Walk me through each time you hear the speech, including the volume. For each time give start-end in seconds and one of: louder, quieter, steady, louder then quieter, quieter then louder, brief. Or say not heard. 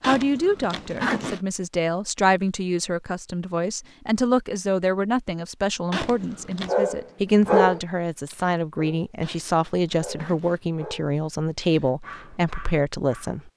0.0-13.5 steady.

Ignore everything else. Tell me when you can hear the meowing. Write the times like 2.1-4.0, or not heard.
not heard.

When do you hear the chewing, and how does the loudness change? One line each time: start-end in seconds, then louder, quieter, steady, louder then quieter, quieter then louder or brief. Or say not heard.
not heard.